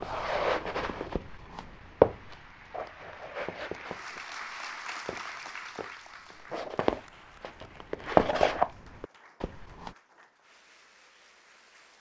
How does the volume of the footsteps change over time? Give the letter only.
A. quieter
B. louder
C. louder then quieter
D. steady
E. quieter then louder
E.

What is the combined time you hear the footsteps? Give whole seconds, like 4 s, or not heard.
10 s.